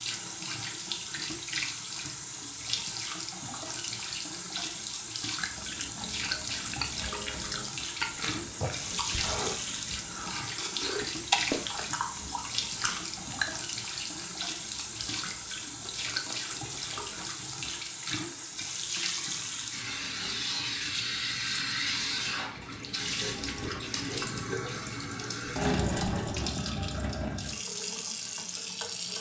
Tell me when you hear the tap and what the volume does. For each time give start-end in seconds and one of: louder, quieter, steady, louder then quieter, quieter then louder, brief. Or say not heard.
0.0-29.1 steady.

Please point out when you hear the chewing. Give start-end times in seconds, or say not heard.
5.3-17.5.